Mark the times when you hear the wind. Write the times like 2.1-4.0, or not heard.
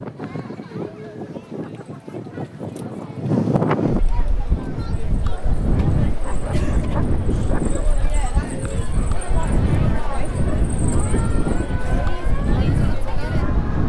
0.0-13.8.